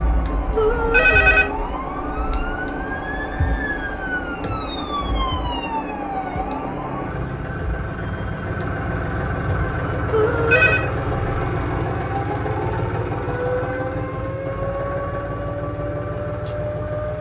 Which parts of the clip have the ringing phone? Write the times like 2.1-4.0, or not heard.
0.6-1.7, 10.1-10.8.